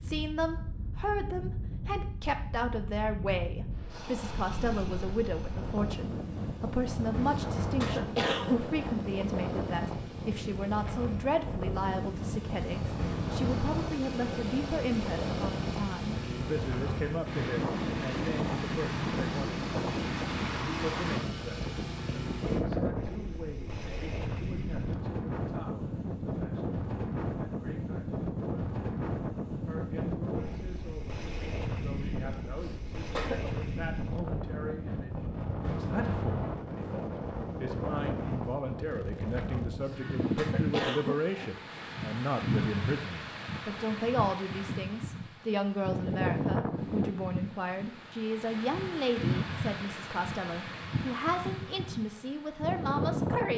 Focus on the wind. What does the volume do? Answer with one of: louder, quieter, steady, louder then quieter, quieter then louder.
steady.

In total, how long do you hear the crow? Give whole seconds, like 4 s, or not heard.
not heard.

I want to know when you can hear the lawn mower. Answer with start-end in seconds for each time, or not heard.
3.9-22.6.